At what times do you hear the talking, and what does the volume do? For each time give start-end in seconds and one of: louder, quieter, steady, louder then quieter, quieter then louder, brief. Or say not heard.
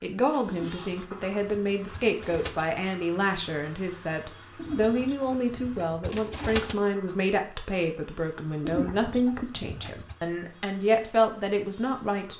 0.0-12.3 steady.